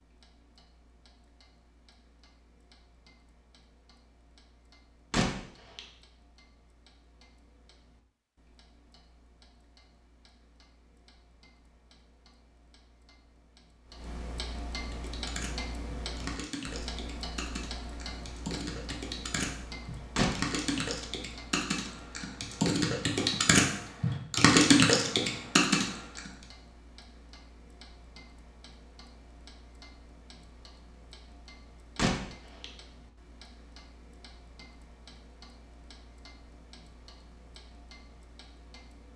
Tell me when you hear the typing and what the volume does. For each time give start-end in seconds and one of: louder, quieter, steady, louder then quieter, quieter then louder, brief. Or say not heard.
14.8-26.3 louder.